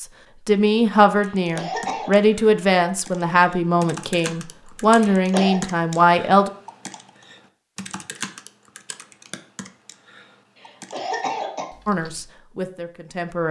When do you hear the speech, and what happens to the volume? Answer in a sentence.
You can hear the speech from 0.0 to 6.5 s, at a steady volume; and briefly from 11.8 to 13.4 s.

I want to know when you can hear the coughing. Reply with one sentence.
The coughing can be heard from 1.2 to 2.1 s, from 5.0 to 5.6 s and from 10.6 to 11.7 s.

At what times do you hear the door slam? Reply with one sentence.
The door slam can't be heard in this clip.